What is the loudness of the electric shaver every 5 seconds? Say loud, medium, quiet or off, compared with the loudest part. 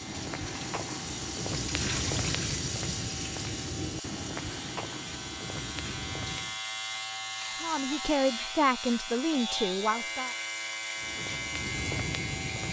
medium, loud, loud.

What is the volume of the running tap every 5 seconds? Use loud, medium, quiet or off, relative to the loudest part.
loud, medium, medium.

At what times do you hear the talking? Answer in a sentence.
The talking can be heard from 7.6 to 10.3 s.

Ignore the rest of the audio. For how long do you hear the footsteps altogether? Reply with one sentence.
The footsteps can be heard for 8 seconds in total.